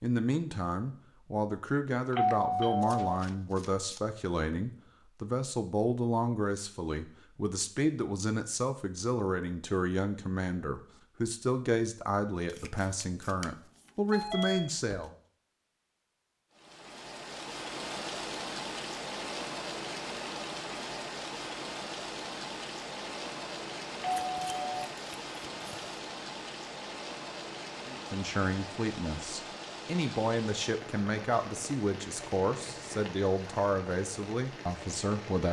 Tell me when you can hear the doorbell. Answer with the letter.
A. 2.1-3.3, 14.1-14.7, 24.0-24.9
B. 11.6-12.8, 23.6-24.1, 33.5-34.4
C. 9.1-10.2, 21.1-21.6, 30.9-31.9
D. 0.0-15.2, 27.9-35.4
A.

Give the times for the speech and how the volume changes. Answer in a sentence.
You can hear the speech from 0.0 to 15.2 s, at a steady volume; and from 27.9 to 35.4 s, at a steady volume.